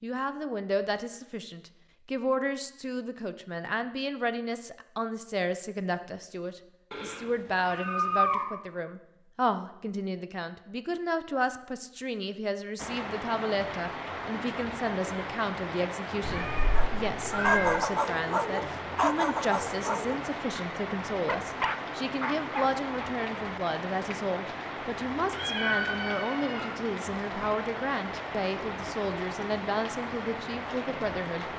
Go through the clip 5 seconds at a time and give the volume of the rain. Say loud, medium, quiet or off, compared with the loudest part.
off, off, loud, loud, loud, loud, loud.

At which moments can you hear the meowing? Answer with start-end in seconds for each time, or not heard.
6.9-8.4, 16.2-17.8, 25.3-26.8.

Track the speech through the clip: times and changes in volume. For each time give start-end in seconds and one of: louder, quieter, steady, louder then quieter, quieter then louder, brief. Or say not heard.
0.0-31.4 steady.